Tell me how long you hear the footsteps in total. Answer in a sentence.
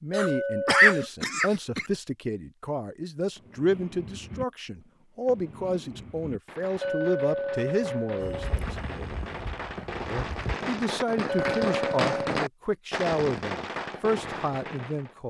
The footsteps can be heard for 2 seconds in total.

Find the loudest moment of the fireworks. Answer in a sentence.
The volume of the fireworks peaks at 12 seconds.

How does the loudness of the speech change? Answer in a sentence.
The loudness of the speech stays about the same.